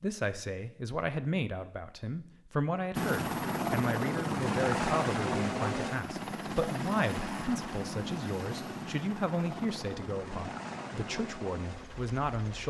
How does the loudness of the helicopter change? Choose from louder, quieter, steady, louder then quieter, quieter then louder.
quieter.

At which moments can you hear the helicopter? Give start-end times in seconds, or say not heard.
3.0-12.6.